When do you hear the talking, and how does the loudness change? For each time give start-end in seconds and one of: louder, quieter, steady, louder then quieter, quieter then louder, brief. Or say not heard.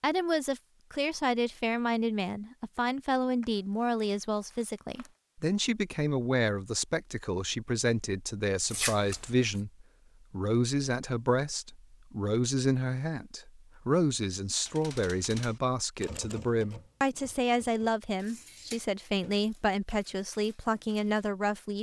0.0-21.7 steady.